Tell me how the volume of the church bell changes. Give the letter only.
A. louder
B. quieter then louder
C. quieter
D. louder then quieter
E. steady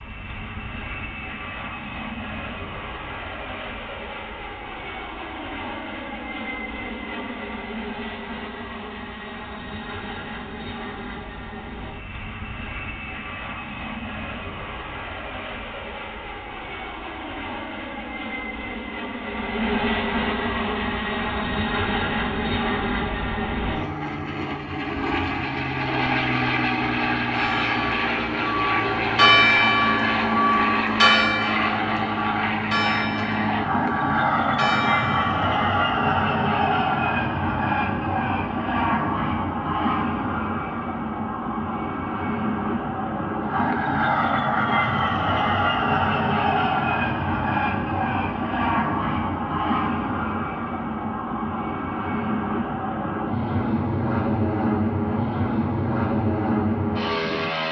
D.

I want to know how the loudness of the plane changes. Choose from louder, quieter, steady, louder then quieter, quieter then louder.
louder.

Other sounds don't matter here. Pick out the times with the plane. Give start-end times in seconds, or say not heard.
0.0-57.6.